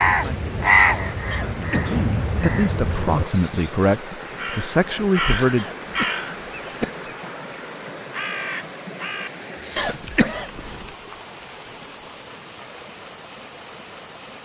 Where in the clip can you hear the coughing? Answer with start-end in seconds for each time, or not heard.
1.3-1.9, 5.5-7.0, 9.8-10.9.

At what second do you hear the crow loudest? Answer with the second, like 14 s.
1 s.